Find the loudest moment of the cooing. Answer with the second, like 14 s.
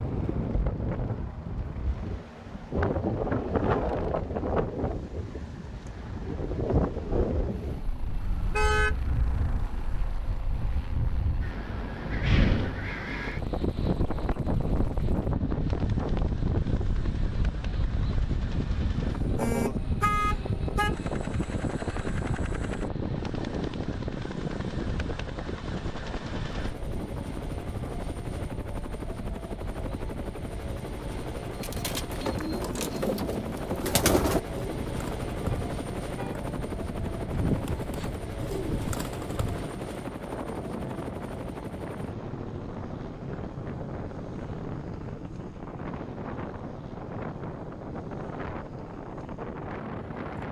34 s.